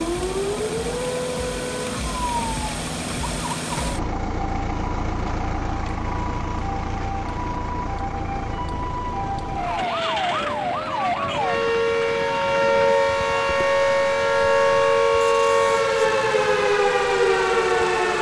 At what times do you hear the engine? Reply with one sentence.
You can hear the engine from 0.0 to 18.1 s.